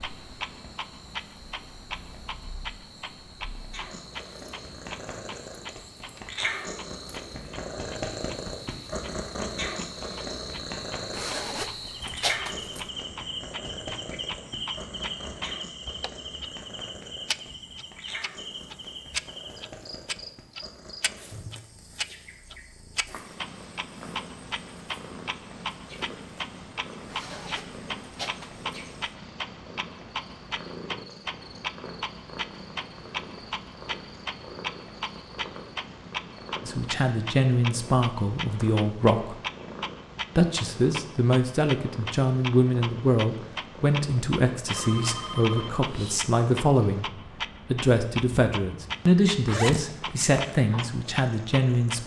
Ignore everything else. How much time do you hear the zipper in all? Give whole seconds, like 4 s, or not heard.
4 s.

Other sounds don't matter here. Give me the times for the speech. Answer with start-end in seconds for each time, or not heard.
36.6-39.4, 40.4-47.1, 47.7-52.0.